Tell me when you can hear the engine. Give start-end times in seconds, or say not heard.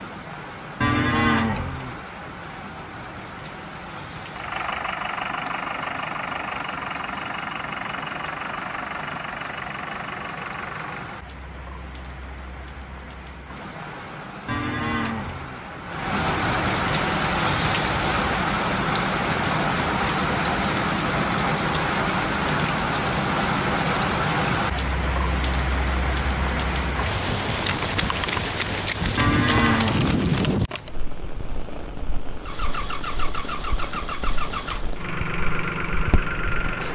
4.3-11.2, 32.4-36.9.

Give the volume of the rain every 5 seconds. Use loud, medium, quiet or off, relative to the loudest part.
quiet, quiet, quiet, loud, loud, loud, medium, quiet.